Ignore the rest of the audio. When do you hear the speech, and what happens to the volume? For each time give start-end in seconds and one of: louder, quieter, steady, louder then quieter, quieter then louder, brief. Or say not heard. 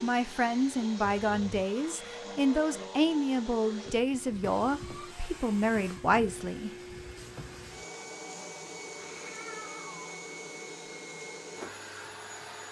0.0-6.7 steady.